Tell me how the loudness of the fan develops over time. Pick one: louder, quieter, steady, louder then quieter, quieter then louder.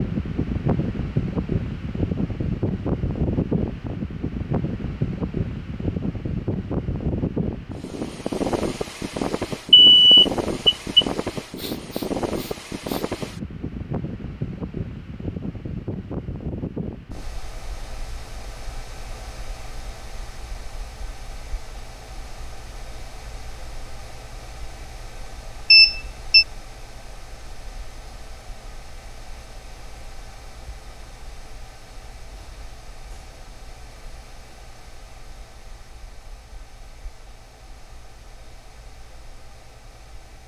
quieter.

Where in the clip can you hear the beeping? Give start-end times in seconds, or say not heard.
9.7-11.1, 25.7-26.4.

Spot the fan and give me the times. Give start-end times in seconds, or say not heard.
0.0-40.4.